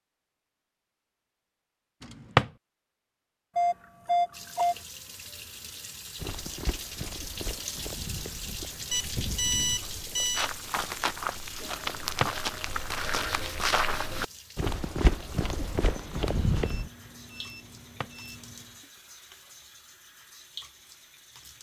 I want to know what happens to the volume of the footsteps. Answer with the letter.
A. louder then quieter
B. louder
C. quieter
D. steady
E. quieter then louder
B.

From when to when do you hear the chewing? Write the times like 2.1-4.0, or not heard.
not heard.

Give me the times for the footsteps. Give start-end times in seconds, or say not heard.
6.2-16.9.